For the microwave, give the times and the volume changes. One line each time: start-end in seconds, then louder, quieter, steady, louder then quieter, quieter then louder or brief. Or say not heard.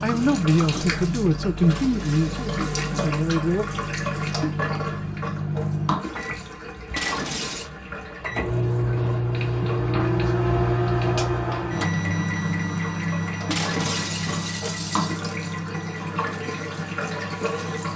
0.0-17.9 louder then quieter.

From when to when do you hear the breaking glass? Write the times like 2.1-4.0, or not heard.
1.7-2.7, 7.0-7.7, 13.5-15.3.